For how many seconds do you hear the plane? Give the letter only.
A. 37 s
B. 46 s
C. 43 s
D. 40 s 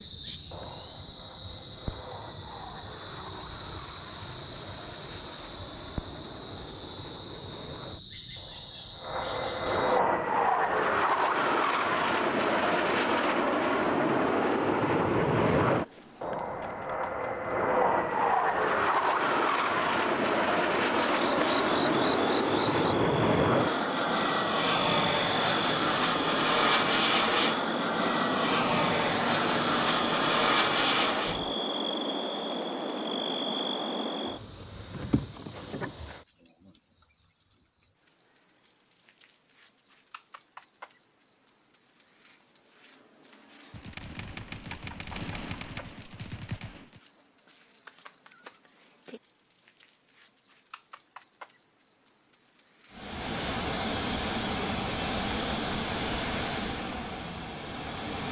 A.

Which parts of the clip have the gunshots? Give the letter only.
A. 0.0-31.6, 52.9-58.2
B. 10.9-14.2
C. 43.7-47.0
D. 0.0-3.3
C.